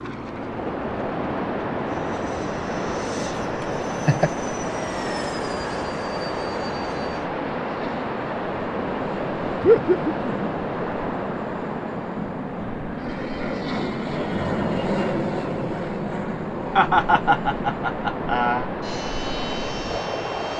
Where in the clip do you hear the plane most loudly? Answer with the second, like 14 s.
15 s.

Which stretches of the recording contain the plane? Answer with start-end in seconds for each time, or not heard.
0.0-20.5.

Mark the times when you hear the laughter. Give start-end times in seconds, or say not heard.
3.6-4.3, 9.6-10.3, 16.8-18.7.